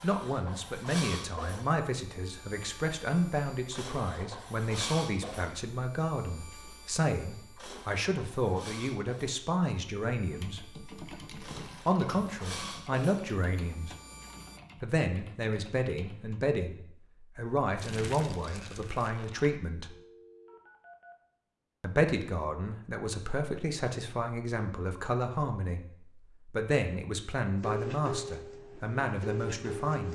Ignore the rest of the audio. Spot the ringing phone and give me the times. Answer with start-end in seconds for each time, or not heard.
19.9-21.1.